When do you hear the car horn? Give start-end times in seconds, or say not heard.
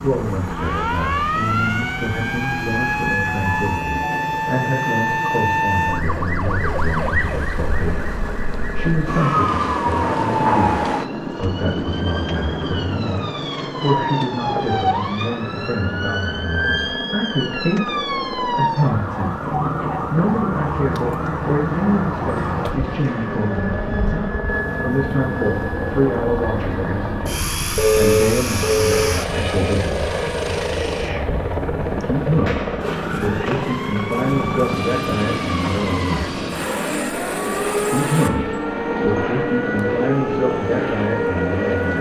27.8-29.1.